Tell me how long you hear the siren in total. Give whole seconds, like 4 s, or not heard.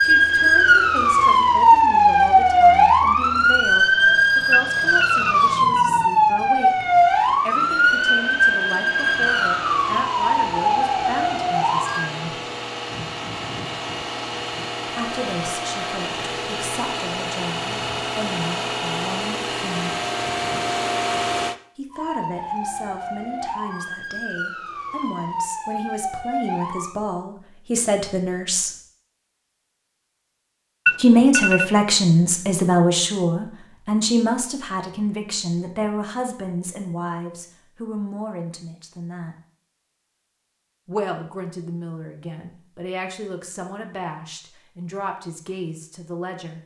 17 s.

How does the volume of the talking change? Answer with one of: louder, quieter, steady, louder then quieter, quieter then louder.
louder then quieter.